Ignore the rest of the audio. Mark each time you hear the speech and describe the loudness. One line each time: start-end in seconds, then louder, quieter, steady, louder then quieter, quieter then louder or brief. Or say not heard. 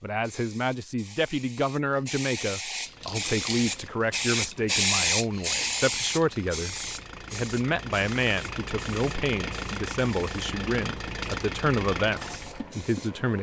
0.0-13.3 steady.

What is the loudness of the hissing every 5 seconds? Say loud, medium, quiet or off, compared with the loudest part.
loud, loud, quiet.